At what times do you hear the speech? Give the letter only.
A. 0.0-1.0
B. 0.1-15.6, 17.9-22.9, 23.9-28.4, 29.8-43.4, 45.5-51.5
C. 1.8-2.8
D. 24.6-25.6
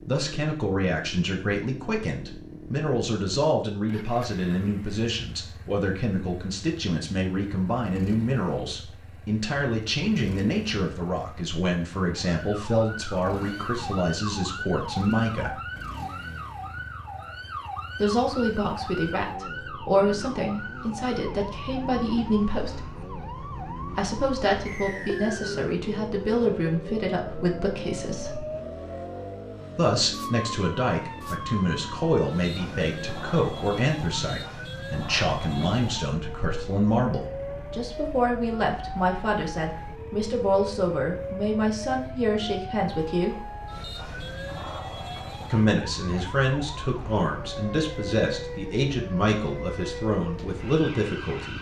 B.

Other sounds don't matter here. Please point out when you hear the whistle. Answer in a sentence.
The whistle can be heard from 24.6 to 25.6 s.